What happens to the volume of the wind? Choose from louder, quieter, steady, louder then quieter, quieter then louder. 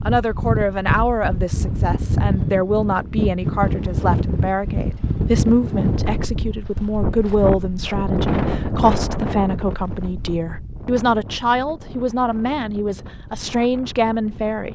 quieter.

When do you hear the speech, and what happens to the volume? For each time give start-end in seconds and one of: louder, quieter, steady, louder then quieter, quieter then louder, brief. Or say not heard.
0.1-14.7 steady.